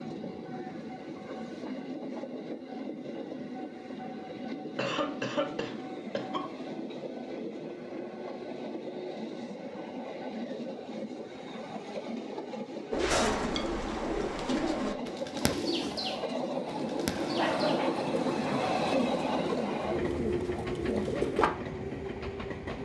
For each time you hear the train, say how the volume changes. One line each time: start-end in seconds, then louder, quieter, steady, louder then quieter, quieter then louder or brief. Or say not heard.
0.0-22.8 louder.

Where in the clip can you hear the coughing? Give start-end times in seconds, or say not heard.
4.8-6.5, 17.2-18.1.